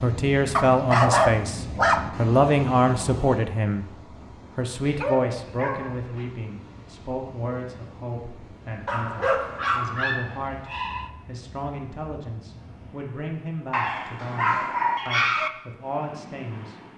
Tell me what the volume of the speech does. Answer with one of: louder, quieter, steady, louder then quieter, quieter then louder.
quieter.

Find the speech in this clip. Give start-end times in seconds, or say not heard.
0.0-16.8.